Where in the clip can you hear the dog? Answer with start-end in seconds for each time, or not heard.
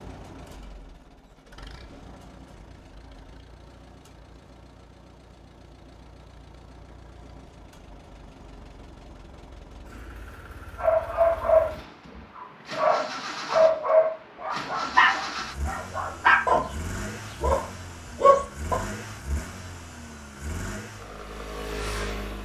10.8-18.8.